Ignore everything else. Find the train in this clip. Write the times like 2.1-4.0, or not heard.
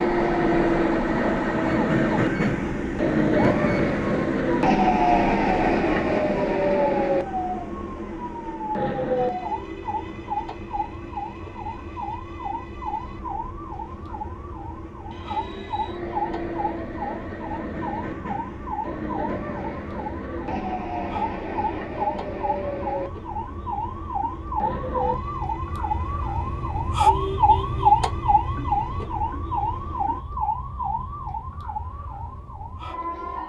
0.0-30.2.